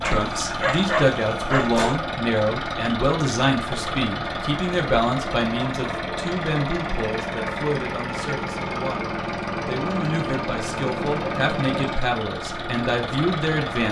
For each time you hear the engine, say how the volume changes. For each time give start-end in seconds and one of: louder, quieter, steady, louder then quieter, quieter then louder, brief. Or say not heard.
0.0-13.8 steady.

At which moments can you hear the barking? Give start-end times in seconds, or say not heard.
0.0-1.8.